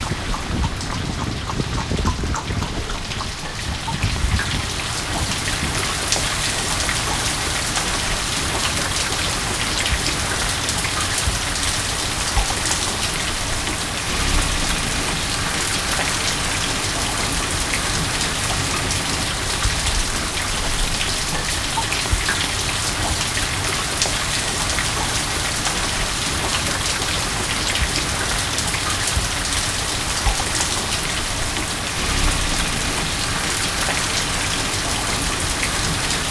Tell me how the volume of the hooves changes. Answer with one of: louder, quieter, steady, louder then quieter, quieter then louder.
quieter.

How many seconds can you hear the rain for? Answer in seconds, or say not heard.
36 s.